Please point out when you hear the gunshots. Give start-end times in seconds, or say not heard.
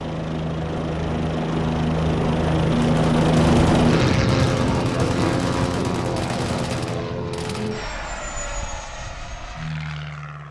2.8-7.8.